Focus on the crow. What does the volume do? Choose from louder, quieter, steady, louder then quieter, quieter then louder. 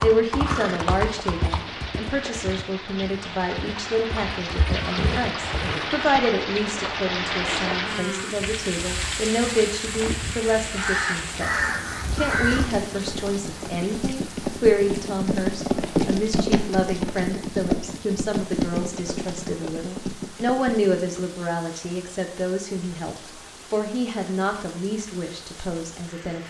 louder.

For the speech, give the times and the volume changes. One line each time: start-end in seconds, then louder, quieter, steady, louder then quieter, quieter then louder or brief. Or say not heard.
0.0-26.4 steady.